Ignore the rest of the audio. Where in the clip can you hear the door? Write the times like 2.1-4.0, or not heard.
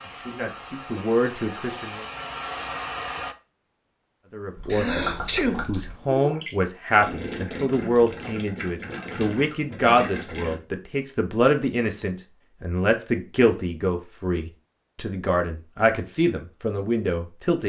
not heard.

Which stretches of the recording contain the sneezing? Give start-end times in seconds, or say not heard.
4.7-5.7.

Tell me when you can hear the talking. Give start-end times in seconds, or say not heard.
0.0-2.0, 4.3-17.6.